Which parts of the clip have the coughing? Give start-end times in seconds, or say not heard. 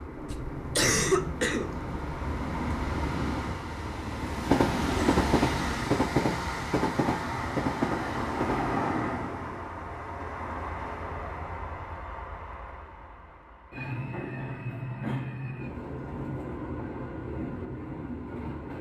0.3-1.8.